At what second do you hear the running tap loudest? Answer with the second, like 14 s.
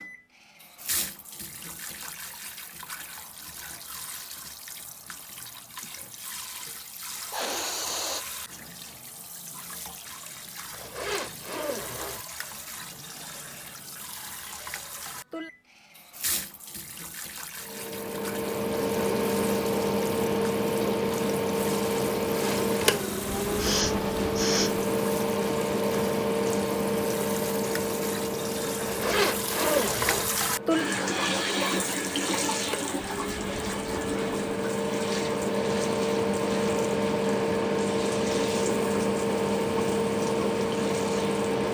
31 s.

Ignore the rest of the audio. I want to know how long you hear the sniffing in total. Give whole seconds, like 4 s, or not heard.
2 s.